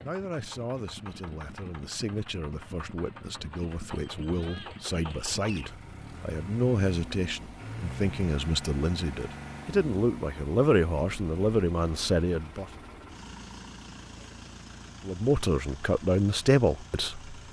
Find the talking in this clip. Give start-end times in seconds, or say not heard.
0.0-12.7, 15.1-17.4.